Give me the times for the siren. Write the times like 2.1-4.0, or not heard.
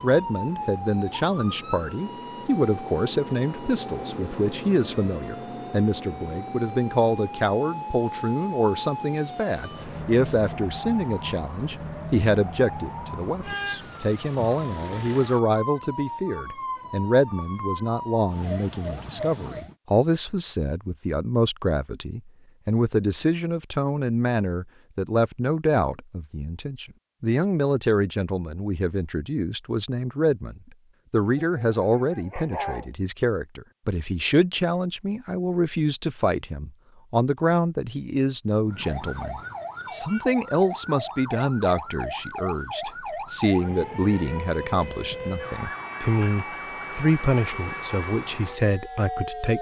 0.0-19.8, 38.6-49.5.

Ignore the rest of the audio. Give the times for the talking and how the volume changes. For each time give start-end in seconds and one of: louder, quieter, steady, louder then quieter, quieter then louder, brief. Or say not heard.
0.0-49.5 steady.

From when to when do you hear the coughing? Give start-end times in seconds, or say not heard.
not heard.